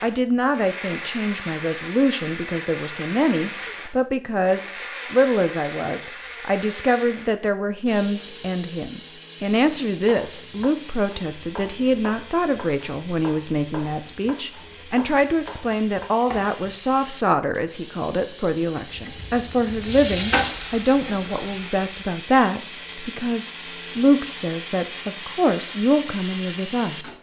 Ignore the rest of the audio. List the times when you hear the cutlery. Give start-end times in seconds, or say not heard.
not heard.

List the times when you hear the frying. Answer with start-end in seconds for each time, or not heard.
18.9-22.1.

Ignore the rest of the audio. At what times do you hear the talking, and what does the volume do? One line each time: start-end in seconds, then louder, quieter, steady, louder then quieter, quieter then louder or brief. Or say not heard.
0.0-27.1 steady.